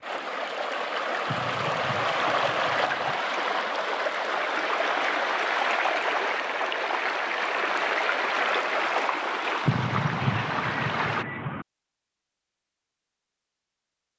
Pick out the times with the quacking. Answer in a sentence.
The quacking can be heard from 1.2 to 3.2 s and from 9.7 to 11.7 s.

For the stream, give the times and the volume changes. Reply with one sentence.
You can hear the stream from 0.0 to 11.2 s, at a steady volume.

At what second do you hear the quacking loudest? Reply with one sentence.
The volume of the quacking peaks at 10 seconds.